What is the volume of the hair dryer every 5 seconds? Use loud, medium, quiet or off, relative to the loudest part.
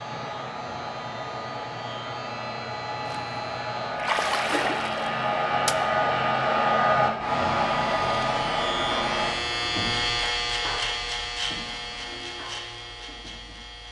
medium, loud, off.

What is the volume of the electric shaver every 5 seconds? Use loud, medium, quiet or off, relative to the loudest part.
medium, loud, loud.